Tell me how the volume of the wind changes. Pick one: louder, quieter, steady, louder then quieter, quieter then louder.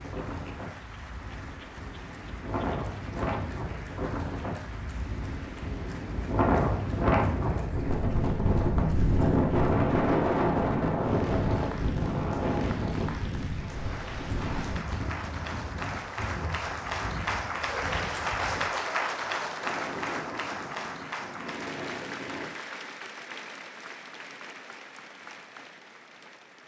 louder then quieter.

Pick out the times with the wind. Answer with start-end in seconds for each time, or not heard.
0.0-22.5.